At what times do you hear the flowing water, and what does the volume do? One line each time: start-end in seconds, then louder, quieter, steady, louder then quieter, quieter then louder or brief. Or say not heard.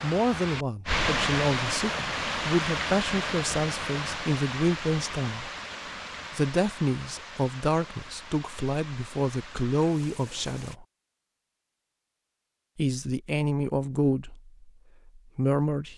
0.0-10.8 quieter.